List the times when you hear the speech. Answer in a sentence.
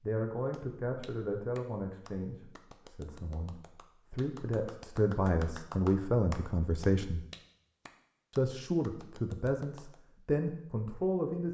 You can hear the speech from 0.0 to 7.2 s and from 8.3 to 11.5 s.